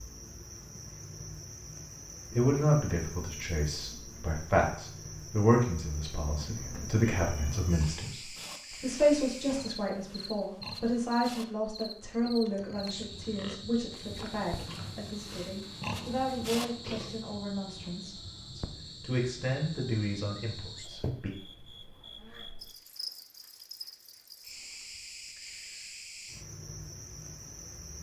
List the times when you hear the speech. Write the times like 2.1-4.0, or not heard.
2.3-21.3.